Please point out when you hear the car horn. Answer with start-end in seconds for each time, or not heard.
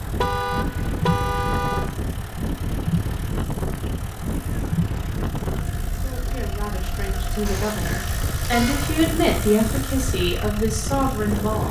0.1-1.9, 7.5-9.1.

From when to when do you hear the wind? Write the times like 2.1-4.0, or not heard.
0.0-11.6.